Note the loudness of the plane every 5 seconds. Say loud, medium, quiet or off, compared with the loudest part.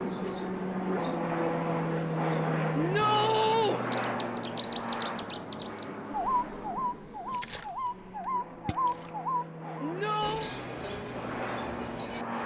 loud, medium, medium.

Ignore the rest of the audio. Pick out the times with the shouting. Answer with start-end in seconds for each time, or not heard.
2.7-3.8, 9.8-10.6.